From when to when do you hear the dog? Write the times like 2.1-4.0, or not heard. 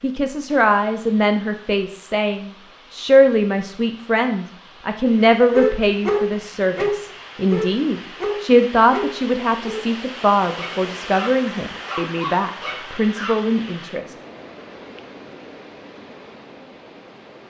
5.5-13.4.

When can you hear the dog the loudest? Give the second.
6 s.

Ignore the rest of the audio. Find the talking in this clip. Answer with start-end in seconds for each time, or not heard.
0.0-14.2.